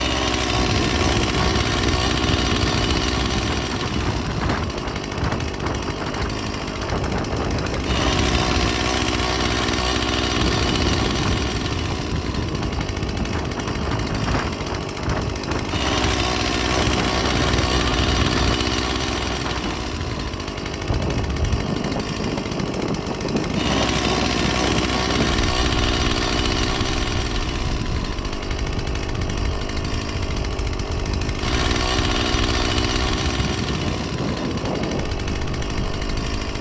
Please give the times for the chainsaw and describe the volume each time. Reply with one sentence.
The chainsaw can be heard from 0.0 to 36.5 s, at a steady volume.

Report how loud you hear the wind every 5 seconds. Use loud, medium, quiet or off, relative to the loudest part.
loud, loud, loud, loud, loud, medium, loud, medium.